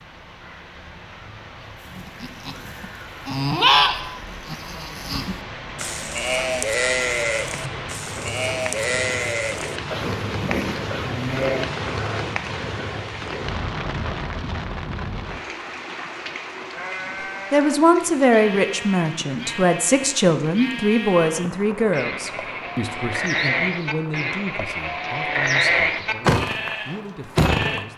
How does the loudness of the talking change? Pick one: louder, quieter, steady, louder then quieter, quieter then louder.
quieter.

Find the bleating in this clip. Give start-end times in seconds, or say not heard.
1.9-12.3, 16.7-27.9.